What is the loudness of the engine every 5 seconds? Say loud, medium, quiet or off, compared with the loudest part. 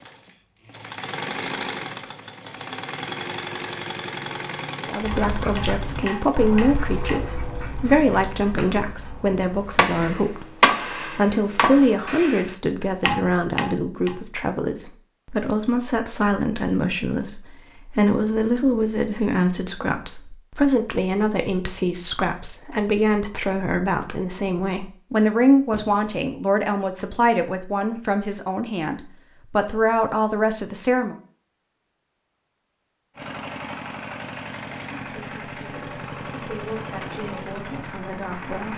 loud, medium, off, off, off, off, loud, loud.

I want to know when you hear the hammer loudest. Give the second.
11 s.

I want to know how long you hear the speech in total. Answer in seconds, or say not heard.
30 s.